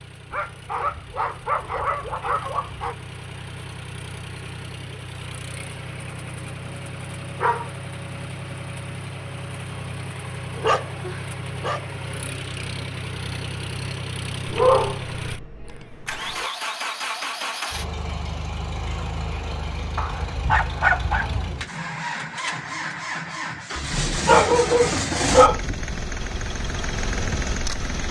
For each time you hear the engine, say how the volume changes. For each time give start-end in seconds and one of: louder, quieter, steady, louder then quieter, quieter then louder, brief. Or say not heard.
0.0-28.0 louder.